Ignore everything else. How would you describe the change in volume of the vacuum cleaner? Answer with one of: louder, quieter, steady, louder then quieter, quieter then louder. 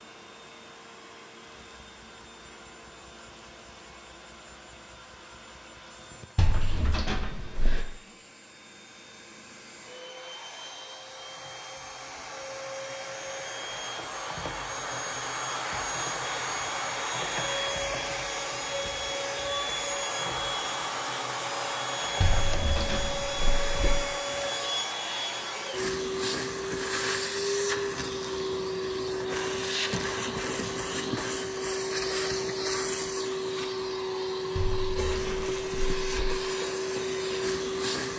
louder.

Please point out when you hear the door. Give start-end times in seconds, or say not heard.
6.3-7.8, 22.2-24.0, 34.5-36.4.